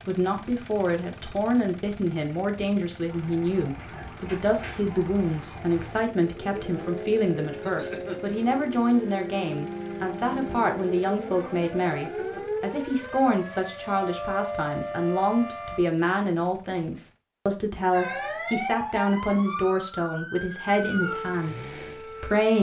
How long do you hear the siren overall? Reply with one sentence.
The siren can be heard for 17 seconds in total.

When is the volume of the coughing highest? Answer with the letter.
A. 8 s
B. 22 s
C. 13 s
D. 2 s
A.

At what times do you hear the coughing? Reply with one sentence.
You can hear the coughing from 7.6 to 8.2 s and from 12.0 to 12.5 s.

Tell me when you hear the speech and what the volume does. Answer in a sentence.
The speech can be heard from 0.1 to 22.5 s, at a steady volume.